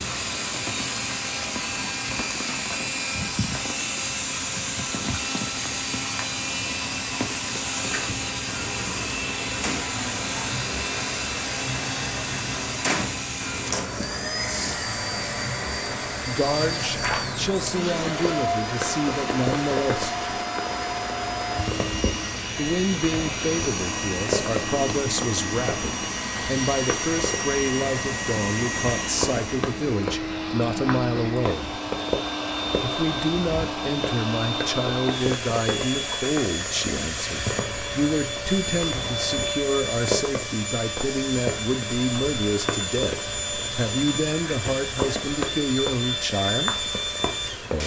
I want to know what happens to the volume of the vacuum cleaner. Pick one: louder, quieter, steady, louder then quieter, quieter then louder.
steady.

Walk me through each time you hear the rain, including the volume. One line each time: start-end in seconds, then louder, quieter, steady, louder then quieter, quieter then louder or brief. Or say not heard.
0.0-47.8 steady.